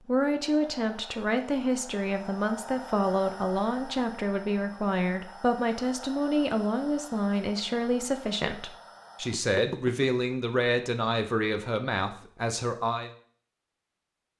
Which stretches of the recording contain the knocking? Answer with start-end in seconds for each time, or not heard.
9.3-10.1.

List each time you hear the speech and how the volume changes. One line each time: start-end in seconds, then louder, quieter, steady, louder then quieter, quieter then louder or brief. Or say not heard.
0.1-13.1 steady.